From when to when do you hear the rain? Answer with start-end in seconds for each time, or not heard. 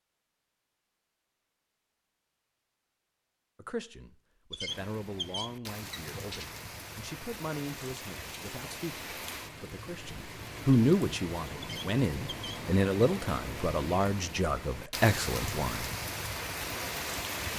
4.7-17.5.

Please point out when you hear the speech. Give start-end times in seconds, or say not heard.
3.5-15.9.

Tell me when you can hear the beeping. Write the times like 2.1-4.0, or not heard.
not heard.